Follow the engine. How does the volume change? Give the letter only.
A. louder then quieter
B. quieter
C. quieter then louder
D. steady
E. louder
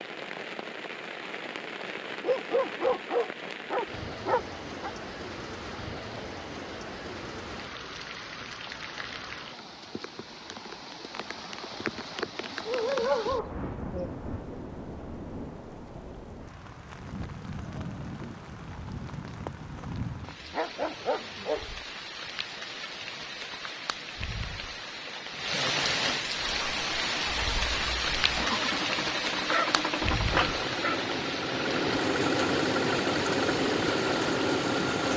E.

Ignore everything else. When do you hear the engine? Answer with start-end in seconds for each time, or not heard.
26.4-35.1.